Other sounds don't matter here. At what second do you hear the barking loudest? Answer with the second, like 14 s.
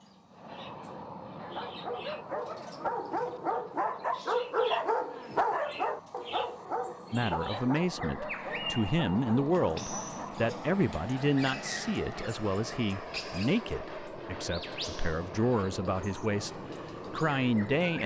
5 s.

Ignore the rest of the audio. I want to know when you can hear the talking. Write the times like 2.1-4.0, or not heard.
7.1-18.0.